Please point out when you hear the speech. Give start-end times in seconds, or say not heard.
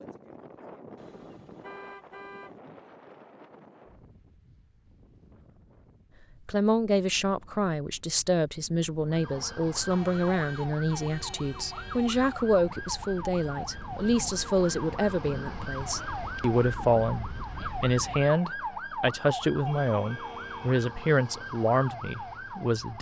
6.5-22.9.